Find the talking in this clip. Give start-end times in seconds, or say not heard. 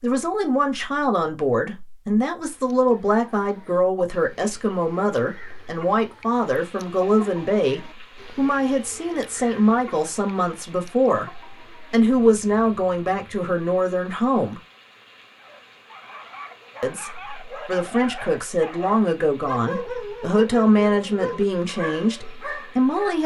0.0-14.6, 16.8-23.2.